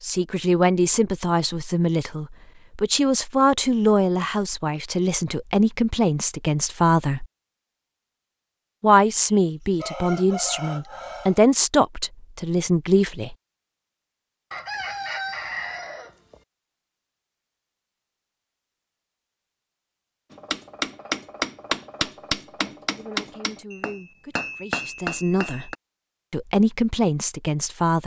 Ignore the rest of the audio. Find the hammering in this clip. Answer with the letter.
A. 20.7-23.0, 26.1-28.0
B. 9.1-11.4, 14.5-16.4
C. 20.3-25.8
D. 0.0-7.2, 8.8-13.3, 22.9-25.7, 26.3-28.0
C.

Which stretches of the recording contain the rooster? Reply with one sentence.
You can hear the rooster from 9.1 to 11.4 s and from 14.5 to 16.4 s.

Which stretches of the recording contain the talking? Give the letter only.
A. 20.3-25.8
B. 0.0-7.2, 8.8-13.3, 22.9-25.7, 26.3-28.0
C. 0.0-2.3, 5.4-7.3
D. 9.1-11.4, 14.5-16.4
B.